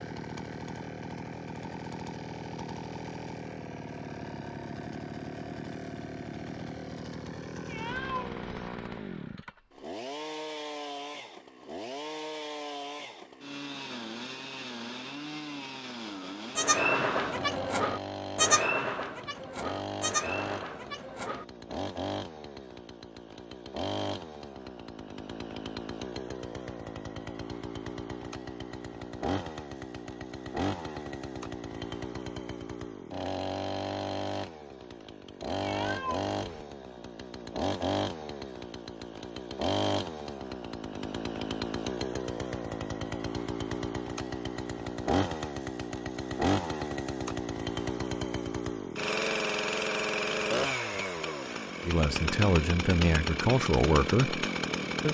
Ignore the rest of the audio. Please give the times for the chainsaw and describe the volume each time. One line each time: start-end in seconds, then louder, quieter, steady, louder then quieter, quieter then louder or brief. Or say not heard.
0.0-55.0 louder.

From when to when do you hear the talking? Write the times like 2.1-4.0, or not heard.
51.8-55.0.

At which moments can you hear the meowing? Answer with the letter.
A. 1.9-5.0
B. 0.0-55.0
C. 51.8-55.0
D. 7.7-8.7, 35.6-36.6
D.